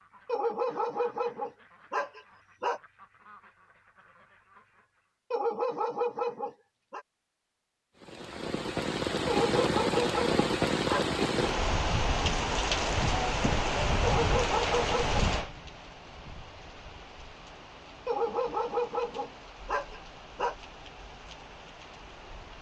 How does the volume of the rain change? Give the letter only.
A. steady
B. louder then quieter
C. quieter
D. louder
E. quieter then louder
C.